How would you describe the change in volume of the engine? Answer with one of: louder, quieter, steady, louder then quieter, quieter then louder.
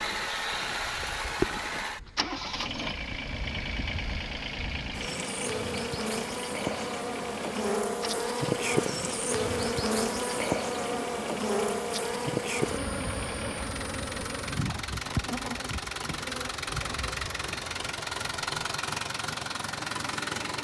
quieter then louder.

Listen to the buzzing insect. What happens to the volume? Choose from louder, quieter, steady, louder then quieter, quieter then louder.
louder then quieter.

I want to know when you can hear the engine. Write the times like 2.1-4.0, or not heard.
0.0-20.5.